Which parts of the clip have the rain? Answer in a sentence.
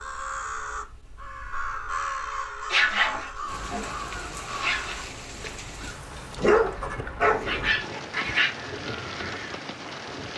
You can hear the rain from 3.5 to 10.3 s.